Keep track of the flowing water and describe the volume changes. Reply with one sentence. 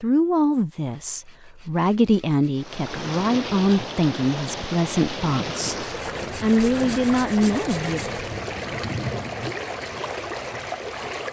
The loudness of the flowing water stays about the same.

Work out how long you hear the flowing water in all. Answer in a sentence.
The flowing water can be heard for 9 seconds in total.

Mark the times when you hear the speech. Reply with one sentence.
The speech can be heard from 0.0 to 8.0 s.